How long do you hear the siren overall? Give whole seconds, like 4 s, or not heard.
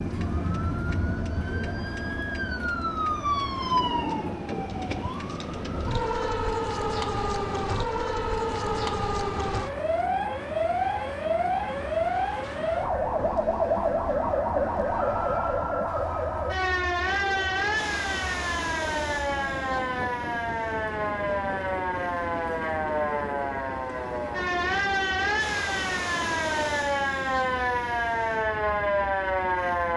30 s.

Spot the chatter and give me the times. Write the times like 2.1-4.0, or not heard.
not heard.